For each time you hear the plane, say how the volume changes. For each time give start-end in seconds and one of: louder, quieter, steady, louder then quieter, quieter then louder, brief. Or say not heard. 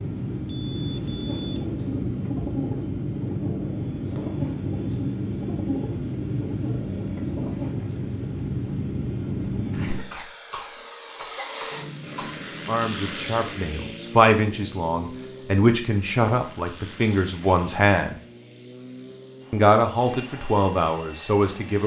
0.0-21.8 quieter.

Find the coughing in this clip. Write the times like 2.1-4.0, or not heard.
9.7-12.3.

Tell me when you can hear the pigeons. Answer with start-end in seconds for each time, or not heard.
1.2-7.8.